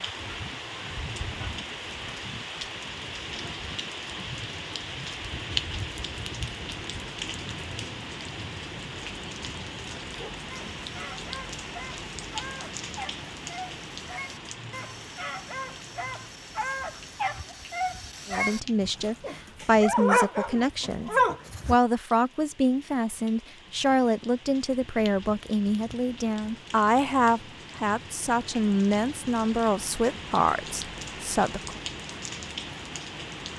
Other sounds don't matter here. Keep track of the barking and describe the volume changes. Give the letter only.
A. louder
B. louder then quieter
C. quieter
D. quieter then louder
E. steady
A.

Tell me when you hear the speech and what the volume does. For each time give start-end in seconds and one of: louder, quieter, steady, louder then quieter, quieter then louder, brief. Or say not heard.
18.2-31.8 steady.